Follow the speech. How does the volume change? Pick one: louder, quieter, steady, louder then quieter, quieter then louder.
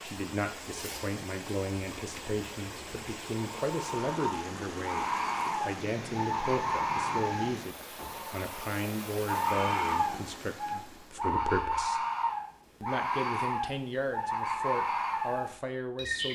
steady.